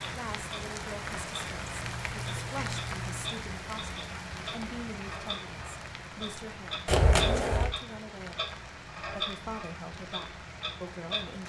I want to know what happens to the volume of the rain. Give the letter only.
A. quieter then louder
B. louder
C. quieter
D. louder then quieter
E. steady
C.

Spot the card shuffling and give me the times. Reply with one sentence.
You can hear the card shuffling from 1.8 to 3.4 s and from 6.8 to 7.7 s.